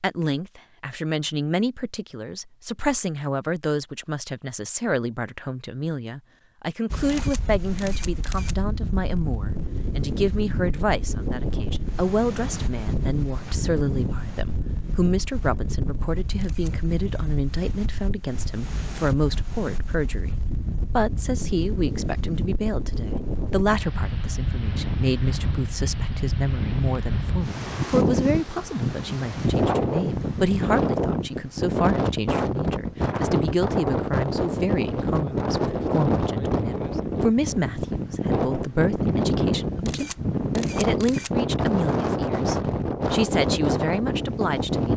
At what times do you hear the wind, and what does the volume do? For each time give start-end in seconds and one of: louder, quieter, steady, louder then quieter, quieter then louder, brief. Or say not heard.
6.9-44.9 louder.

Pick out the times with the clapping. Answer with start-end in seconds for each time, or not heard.
not heard.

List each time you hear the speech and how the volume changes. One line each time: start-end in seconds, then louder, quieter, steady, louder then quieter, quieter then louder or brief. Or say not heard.
0.0-44.9 steady.